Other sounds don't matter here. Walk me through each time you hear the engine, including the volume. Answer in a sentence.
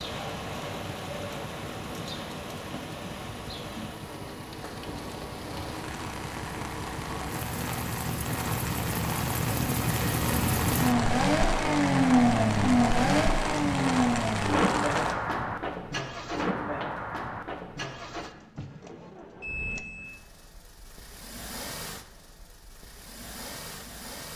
The engine can be heard from 0.0 to 24.3 s, getting louder then quieter.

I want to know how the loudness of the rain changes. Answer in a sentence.
The loudness of the rain goes up.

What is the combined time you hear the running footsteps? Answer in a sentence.
You can't hear the running footsteps here.